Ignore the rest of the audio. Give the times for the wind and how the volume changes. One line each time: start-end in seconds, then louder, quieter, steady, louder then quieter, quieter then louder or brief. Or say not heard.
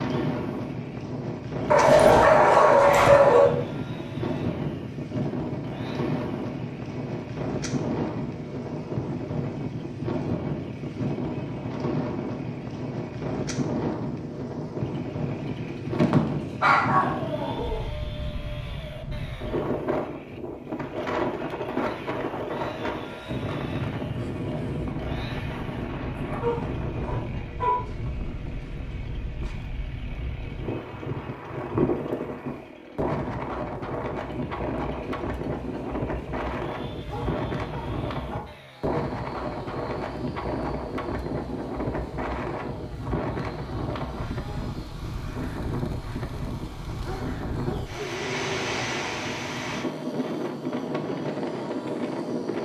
0.0-52.6 steady.